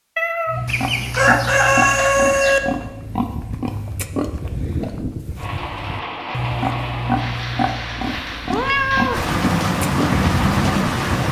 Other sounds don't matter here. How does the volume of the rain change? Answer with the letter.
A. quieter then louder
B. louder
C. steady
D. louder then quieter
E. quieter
B.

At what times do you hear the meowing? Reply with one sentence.
You can hear the meowing from 0.1 to 0.6 s and from 8.5 to 9.2 s.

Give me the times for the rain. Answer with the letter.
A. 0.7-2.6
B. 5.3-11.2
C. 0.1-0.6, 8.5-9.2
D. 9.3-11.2
B.